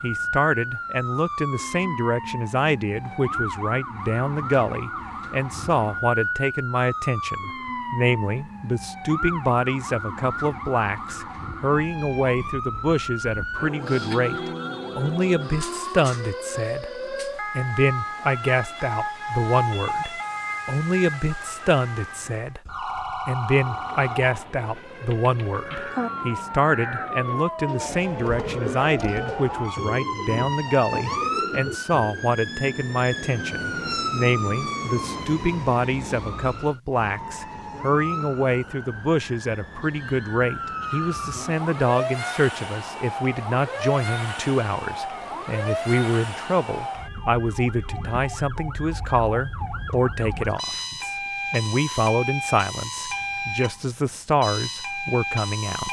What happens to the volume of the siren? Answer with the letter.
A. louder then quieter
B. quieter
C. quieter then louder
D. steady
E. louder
D.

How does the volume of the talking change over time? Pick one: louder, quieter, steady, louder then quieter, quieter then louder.
steady.